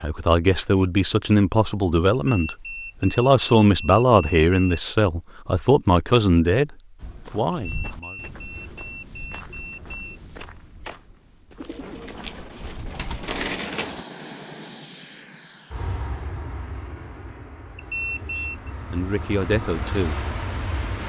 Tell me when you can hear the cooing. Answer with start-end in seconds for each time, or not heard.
11.6-14.1.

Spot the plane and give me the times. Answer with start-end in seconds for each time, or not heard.
13.7-21.0.